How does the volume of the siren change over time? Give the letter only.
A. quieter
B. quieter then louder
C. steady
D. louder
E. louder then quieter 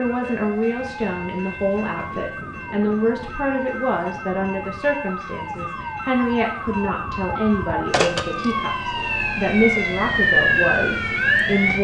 D.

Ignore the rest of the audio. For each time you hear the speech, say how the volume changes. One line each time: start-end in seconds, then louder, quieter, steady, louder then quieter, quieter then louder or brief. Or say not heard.
0.0-11.7 steady.